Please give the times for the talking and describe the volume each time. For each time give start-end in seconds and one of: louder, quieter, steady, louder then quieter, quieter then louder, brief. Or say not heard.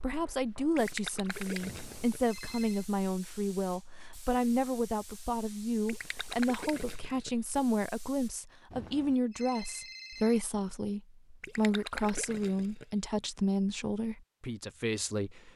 0.0-15.5 steady.